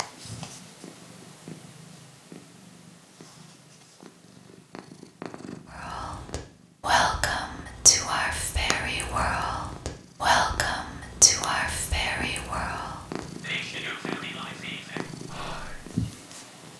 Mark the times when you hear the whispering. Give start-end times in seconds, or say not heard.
5.7-16.0.